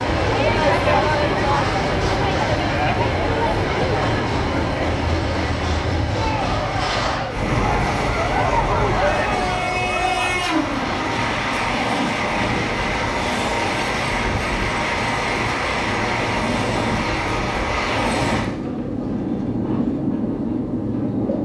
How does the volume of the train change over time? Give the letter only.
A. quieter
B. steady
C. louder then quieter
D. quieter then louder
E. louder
B.